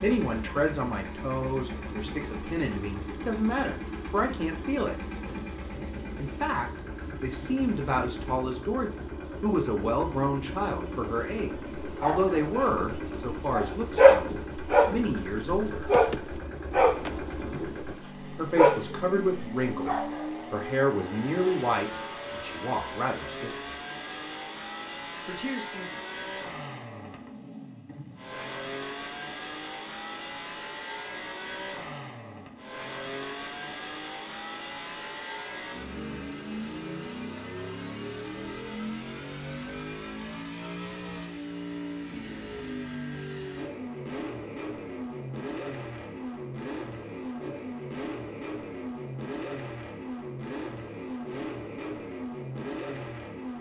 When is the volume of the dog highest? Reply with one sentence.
The volume of the dog peaks at 14 seconds.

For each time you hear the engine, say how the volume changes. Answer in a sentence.
The engine can be heard from 0.0 to 53.5 s, at a steady volume.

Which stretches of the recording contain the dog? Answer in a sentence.
You can hear the dog from 11.6 to 20.2 s.